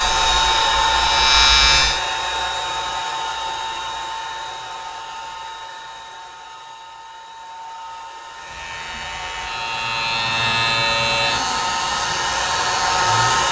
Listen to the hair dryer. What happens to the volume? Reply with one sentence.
The volume of the hair dryer goes down, then up.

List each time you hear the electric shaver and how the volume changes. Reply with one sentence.
The electric shaver can be heard briefly from 0.0 to 2.0 s; and from 8.3 to 13.4 s, getting louder then quieter.